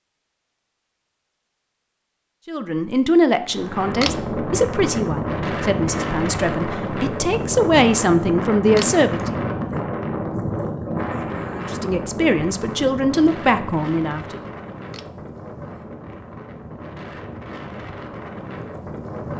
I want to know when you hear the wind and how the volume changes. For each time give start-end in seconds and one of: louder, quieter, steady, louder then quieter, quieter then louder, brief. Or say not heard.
3.5-19.3 quieter.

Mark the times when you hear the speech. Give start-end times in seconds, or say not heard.
2.5-9.4, 11.6-14.4.